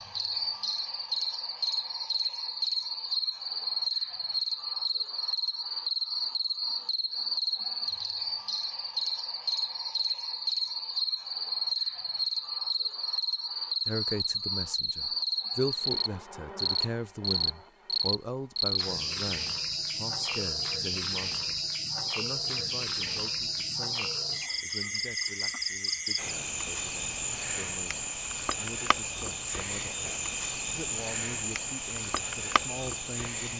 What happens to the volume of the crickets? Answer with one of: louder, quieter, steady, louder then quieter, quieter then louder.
steady.